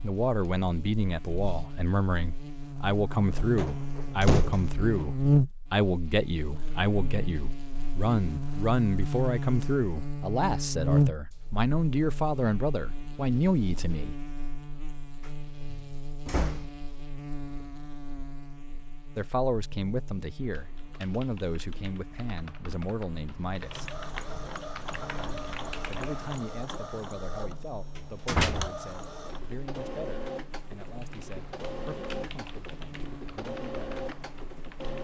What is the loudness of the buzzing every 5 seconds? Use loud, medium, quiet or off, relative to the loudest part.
medium, loud, loud, quiet, quiet, quiet, quiet.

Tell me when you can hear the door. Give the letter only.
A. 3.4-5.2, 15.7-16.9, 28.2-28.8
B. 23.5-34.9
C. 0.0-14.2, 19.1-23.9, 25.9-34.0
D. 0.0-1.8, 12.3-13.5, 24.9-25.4
A.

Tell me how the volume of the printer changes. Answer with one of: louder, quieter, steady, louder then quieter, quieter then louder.
steady.